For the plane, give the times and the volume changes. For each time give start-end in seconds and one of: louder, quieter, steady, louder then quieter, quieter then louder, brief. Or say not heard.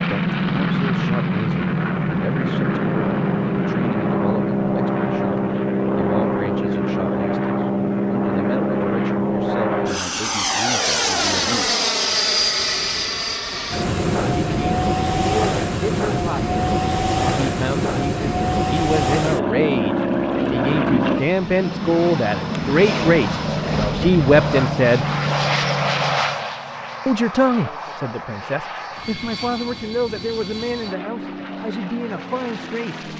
0.0-33.1 quieter.